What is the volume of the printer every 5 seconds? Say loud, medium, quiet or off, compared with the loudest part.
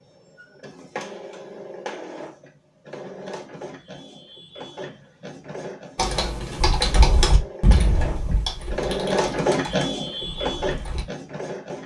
medium, loud, loud.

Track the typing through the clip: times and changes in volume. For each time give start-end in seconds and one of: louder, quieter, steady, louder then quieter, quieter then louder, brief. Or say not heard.
6.0-11.1 quieter.